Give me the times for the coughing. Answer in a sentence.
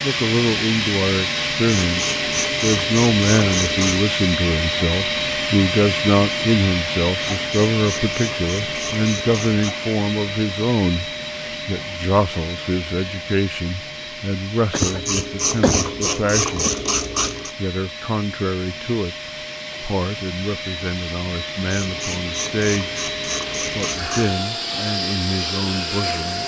The coughing can be heard from 14.7 to 16.7 s.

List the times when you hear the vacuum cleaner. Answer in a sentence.
You can hear the vacuum cleaner from 0.0 to 26.4 s.